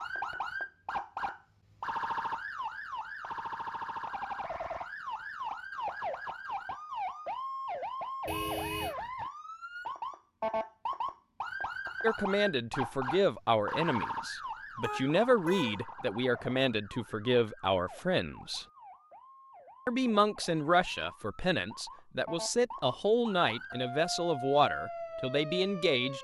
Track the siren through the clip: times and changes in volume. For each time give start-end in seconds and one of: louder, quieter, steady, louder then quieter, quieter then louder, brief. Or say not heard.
0.0-26.1 quieter then louder.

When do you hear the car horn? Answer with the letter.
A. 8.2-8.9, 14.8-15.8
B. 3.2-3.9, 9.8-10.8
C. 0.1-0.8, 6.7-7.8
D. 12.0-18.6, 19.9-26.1
A.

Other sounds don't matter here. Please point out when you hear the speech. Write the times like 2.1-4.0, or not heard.
12.0-18.6, 19.9-26.1.